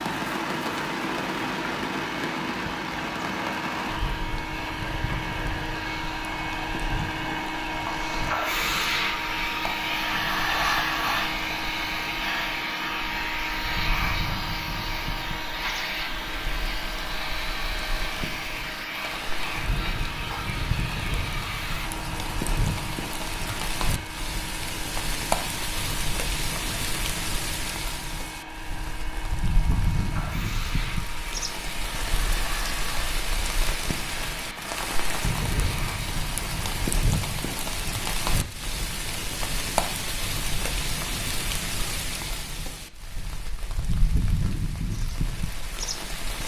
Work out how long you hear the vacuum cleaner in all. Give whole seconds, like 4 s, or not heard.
37 s.